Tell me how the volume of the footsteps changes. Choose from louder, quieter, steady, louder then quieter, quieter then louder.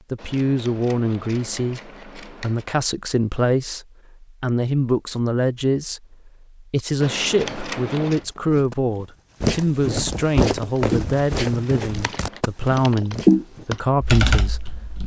louder then quieter.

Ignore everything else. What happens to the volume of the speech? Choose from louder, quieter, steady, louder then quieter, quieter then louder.
steady.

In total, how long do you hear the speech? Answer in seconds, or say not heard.
15 s.